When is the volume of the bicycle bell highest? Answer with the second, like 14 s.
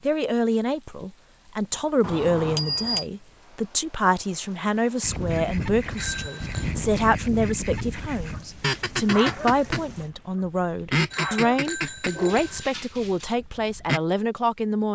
3 s.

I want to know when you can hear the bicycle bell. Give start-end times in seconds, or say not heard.
2.0-3.1, 6.0-6.7, 11.1-12.7.